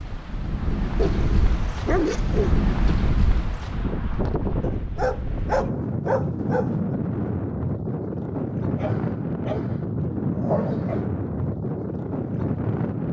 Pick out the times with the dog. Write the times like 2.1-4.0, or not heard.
0.9-2.5, 4.6-7.0, 8.8-11.1.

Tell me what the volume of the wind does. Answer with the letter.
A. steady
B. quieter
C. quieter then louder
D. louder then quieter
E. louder
A.